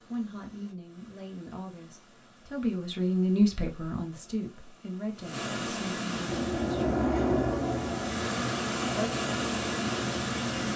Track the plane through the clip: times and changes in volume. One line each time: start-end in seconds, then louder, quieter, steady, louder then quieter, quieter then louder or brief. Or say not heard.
6.1-10.7 quieter.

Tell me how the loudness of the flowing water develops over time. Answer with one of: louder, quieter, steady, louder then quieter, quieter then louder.
louder.